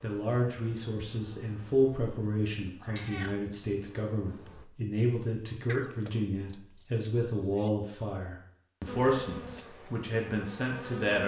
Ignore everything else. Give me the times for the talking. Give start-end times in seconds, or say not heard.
0.0-11.2.